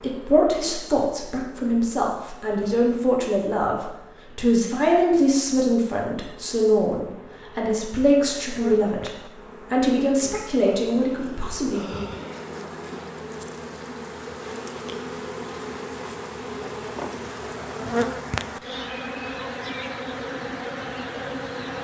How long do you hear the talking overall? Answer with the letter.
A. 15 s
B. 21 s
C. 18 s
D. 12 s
D.